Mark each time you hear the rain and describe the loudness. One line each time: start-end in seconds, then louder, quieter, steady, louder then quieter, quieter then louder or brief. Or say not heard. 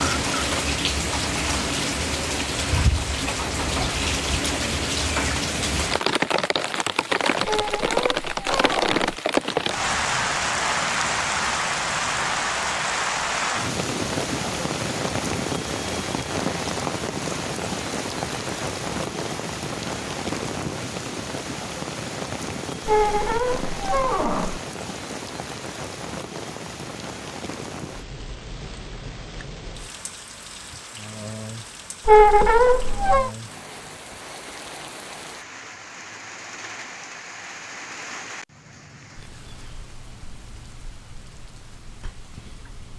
0.0-42.9 quieter.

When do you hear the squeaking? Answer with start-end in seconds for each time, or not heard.
7.5-8.9, 22.9-24.6, 32.0-33.3.